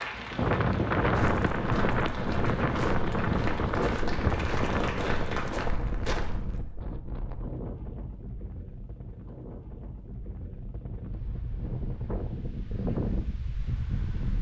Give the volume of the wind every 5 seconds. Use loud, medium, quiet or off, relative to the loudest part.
loud, medium, medium.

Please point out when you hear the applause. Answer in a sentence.
You can hear the applause from 0.0 to 5.7 s.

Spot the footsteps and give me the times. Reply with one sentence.
The footsteps can be heard from 1.1 to 6.6 s.